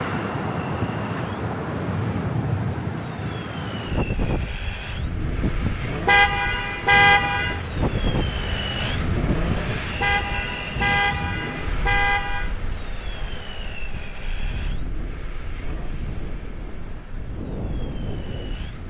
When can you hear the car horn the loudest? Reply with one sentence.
The loudest moment of the car horn is at 7 seconds.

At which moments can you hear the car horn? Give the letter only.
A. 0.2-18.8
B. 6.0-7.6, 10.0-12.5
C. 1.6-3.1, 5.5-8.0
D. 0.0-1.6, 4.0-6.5
B.